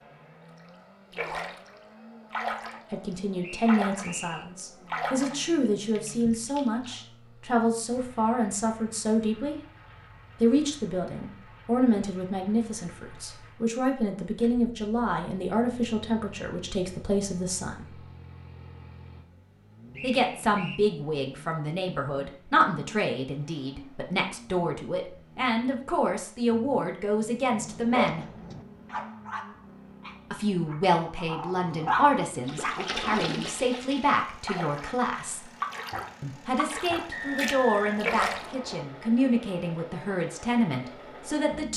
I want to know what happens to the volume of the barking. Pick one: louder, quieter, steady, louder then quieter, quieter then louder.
quieter then louder.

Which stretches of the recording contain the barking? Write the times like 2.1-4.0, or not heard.
27.6-33.0.